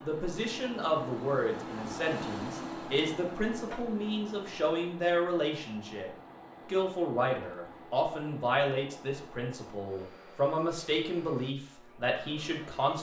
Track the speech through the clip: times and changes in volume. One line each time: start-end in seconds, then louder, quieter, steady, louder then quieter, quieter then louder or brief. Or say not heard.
0.0-12.9 steady.